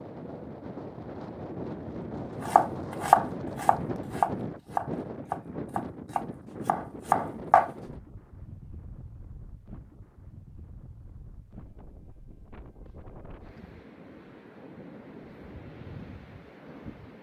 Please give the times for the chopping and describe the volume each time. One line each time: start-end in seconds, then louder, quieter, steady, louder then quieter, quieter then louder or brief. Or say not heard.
2.5-7.7 quieter then louder.